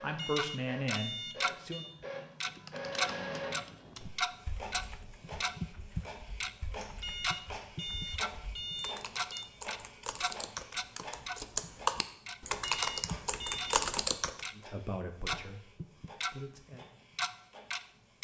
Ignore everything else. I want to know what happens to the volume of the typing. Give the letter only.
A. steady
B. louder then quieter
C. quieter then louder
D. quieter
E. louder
C.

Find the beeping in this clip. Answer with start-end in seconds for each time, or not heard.
0.1-1.9, 7.0-9.4, 12.6-13.8.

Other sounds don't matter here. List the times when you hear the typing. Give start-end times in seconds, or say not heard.
2.5-14.4.